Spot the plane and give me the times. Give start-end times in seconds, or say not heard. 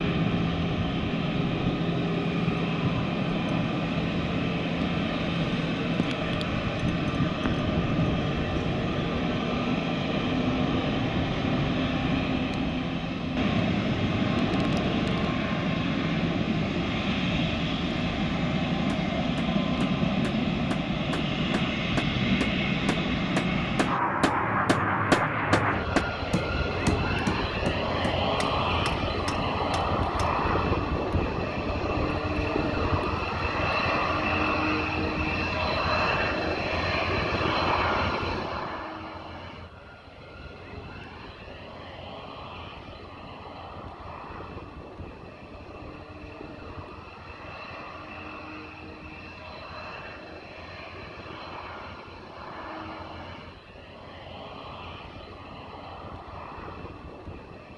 0.0-57.7.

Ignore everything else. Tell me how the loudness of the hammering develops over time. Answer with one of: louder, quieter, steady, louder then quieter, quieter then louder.
louder then quieter.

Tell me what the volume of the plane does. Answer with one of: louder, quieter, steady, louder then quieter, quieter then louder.
quieter.